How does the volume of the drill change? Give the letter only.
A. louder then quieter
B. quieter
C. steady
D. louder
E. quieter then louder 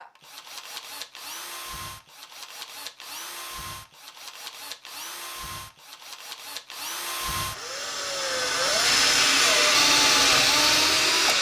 D.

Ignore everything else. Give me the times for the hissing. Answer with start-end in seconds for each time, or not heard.
8.8-11.3.